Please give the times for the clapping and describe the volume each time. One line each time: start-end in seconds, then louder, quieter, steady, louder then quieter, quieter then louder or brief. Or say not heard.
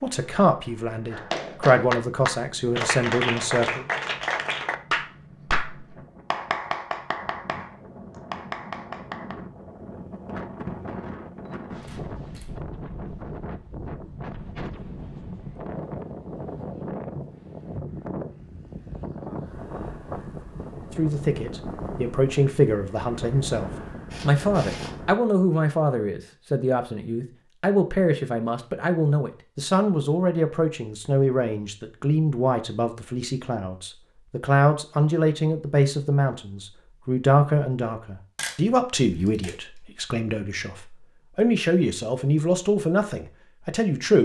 1.1-9.3 quieter.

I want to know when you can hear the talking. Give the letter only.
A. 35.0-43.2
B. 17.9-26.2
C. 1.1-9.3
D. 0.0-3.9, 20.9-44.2
D.